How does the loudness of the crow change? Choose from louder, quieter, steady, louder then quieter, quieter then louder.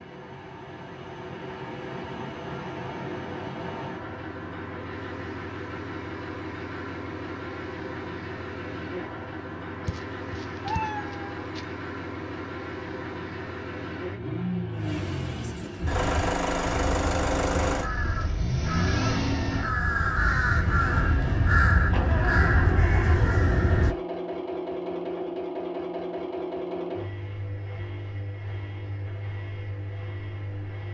louder.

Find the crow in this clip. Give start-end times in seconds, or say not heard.
15.8-23.9.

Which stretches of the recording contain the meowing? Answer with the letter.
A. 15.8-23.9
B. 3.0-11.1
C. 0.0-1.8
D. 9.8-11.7
D.